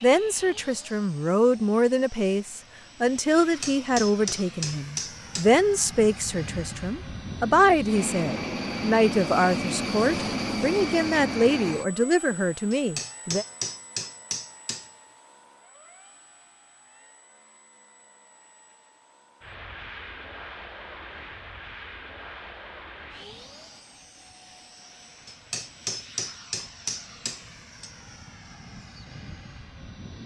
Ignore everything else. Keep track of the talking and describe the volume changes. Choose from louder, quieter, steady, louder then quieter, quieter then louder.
steady.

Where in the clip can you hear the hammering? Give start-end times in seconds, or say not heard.
3.4-5.5, 12.7-14.9, 25.2-27.9.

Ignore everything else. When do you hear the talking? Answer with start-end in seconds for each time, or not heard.
0.0-13.4.